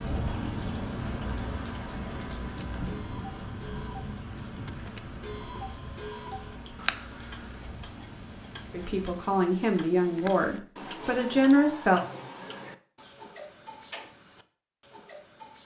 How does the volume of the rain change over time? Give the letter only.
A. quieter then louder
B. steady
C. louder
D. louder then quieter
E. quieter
E.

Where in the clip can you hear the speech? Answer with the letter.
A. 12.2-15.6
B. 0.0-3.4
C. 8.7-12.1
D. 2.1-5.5
C.